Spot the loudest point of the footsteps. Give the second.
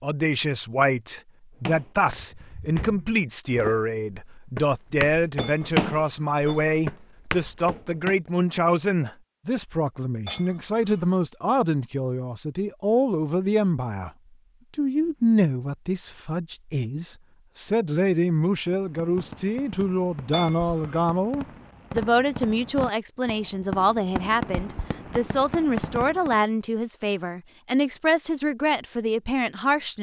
6 s.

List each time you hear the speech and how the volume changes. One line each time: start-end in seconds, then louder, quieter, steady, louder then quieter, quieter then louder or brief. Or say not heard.
0.0-14.1 steady
14.8-29.9 steady.